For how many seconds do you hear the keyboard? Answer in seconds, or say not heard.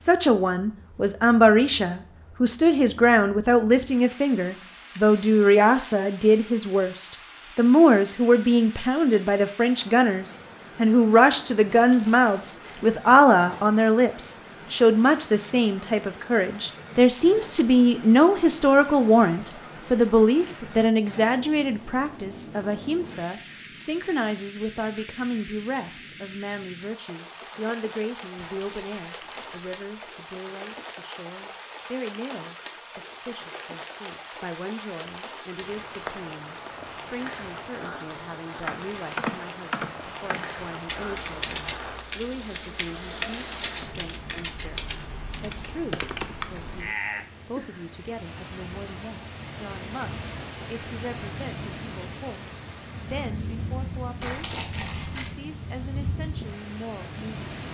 8 s.